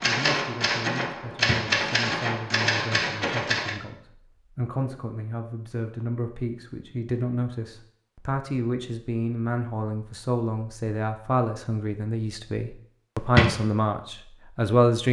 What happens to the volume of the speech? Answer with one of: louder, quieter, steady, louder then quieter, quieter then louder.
louder.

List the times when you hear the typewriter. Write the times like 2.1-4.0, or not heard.
0.0-3.8.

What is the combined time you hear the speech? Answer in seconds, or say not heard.
15 s.